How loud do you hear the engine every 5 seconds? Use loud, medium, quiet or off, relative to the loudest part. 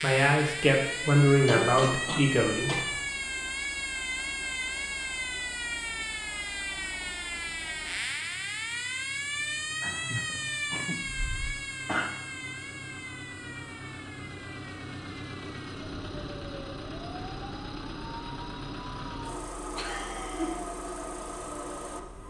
medium, medium, medium, loud, loud.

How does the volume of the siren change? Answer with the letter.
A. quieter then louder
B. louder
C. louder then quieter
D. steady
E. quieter
E.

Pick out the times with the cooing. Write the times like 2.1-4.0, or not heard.
not heard.